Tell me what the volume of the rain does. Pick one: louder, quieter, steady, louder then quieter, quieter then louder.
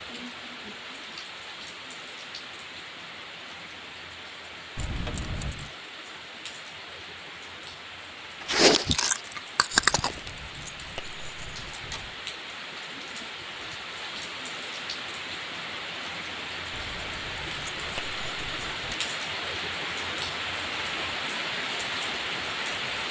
louder.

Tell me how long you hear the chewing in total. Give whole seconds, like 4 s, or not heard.
2 s.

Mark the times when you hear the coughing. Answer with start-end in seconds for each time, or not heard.
not heard.